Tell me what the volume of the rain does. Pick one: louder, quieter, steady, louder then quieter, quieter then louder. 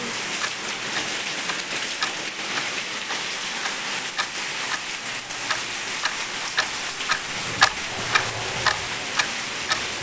steady.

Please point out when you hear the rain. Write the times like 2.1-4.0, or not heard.
0.0-9.9.